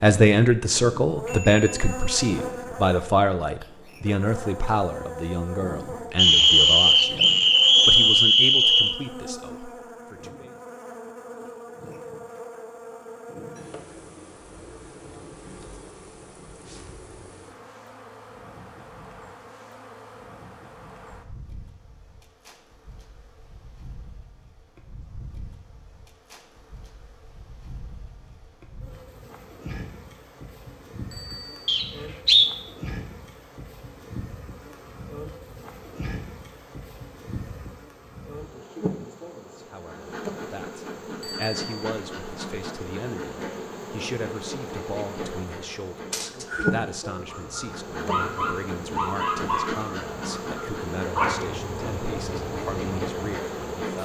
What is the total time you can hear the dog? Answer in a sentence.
You can hear the dog for 6 seconds altogether.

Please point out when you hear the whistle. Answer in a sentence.
You can hear the whistle from 6.2 to 8.9 s, from 31.6 to 32.5 s and from 46.1 to 46.7 s.